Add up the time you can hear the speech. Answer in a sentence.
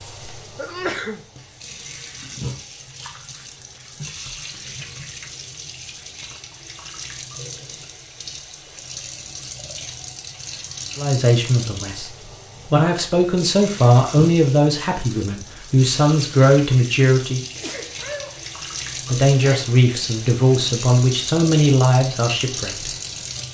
You can hear the speech for 10 seconds altogether.